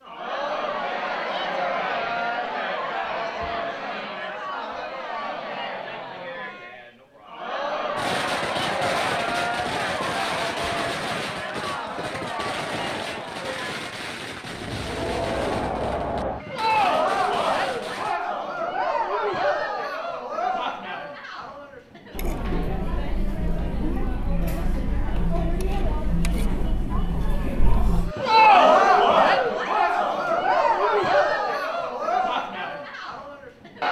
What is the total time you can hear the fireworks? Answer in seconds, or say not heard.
10 s.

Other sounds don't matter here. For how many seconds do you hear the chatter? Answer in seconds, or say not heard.
34 s.